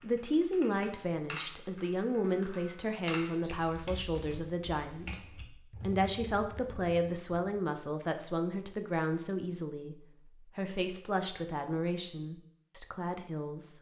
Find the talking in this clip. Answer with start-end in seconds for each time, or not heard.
0.0-13.7.